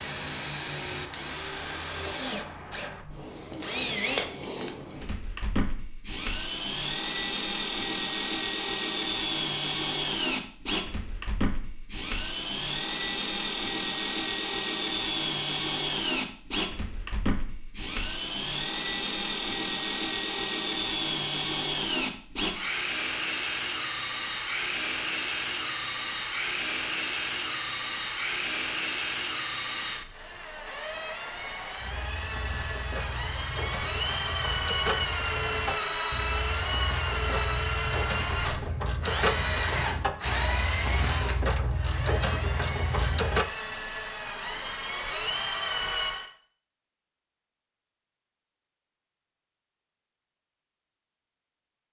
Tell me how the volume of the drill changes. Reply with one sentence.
The loudness of the drill stays about the same.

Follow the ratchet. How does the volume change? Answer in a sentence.
The volume of the ratchet goes up.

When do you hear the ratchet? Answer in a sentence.
The ratchet can be heard from 31.8 to 43.5 s.